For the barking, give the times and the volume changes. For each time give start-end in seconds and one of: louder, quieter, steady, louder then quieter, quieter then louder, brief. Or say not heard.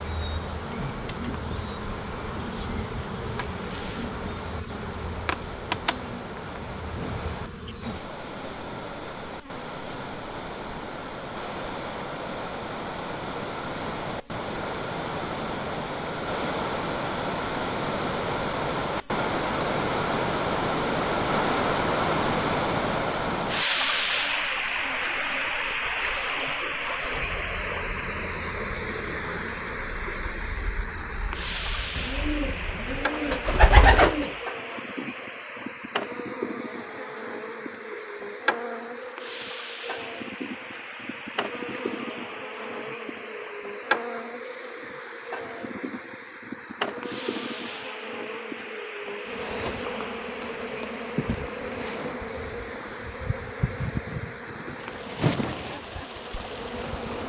not heard.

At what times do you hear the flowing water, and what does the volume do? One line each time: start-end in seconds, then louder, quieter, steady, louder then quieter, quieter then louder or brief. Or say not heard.
0.0-57.2 louder then quieter.